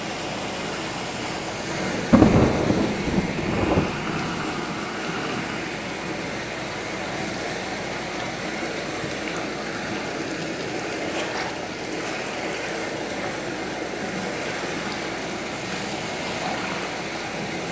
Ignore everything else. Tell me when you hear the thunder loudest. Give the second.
2 s.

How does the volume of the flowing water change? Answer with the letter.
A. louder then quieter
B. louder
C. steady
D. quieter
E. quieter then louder
C.